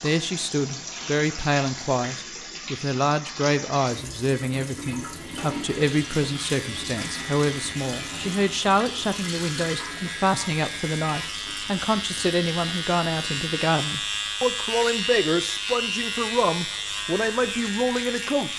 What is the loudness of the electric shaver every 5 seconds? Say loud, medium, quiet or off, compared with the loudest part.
off, medium, loud, loud.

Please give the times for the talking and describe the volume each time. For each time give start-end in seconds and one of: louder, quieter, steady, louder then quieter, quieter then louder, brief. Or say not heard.
0.0-18.5 steady.